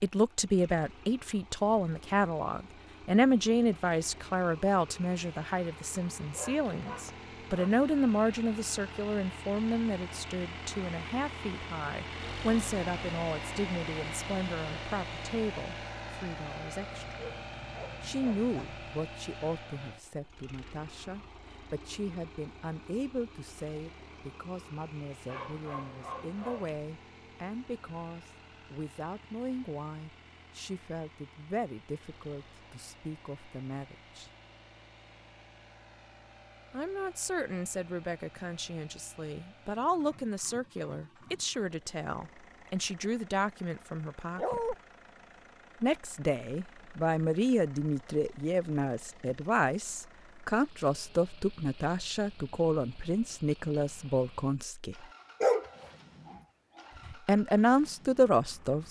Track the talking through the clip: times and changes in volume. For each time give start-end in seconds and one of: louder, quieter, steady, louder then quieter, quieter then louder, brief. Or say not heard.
0.0-17.1 quieter
18.0-34.3 steady
36.7-44.6 steady
45.8-55.0 steady
57.2-58.8 brief.